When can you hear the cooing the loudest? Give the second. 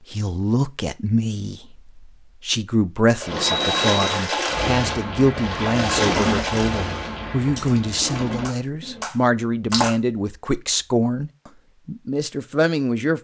6 s.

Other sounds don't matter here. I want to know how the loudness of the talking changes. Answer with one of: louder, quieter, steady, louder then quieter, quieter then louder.
steady.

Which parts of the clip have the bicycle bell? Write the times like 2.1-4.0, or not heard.
3.3-4.2.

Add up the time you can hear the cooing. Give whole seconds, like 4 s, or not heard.
5 s.